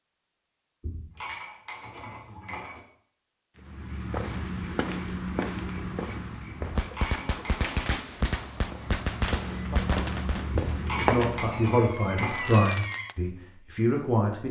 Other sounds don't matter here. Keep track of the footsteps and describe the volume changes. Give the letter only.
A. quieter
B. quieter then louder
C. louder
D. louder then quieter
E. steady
B.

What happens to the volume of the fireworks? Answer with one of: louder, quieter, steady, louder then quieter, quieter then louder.
louder then quieter.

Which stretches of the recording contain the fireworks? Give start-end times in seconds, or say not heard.
6.8-13.2.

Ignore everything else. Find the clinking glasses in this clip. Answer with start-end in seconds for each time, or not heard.
0.8-2.8, 6.8-7.7, 10.7-12.5.